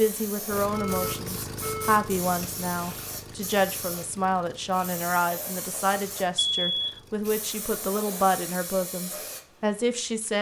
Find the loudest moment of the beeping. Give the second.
7 s.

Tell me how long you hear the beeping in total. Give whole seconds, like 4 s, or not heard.
2 s.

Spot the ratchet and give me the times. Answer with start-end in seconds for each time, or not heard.
not heard.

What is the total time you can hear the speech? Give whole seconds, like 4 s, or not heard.
10 s.